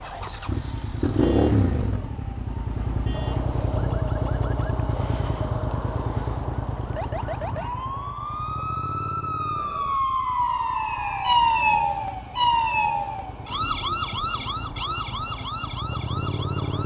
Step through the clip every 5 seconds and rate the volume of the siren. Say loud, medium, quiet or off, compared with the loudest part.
quiet, medium, loud, medium.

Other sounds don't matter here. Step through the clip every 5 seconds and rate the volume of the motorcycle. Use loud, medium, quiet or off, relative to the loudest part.
loud, medium, quiet, medium.